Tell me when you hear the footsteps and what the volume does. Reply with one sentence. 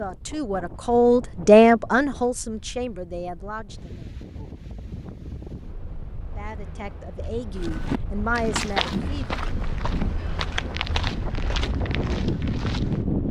The footsteps can be heard from 7.5 to 13.0 s, getting quieter.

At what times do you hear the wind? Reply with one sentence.
The wind can be heard from 0.0 to 13.2 s.